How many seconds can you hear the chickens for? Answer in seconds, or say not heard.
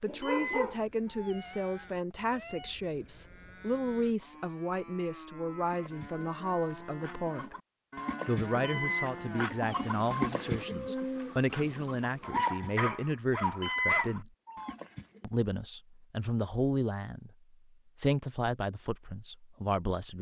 10 s.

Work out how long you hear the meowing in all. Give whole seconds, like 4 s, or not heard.
5 s.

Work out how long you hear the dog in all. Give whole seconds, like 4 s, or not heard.
3 s.